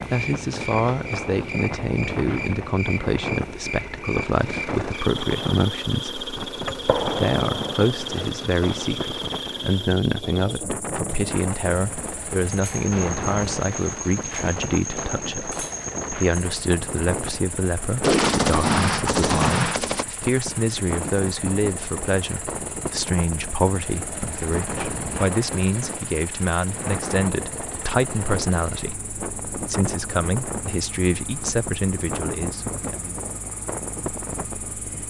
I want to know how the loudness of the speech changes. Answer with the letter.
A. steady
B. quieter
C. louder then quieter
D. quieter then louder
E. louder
A.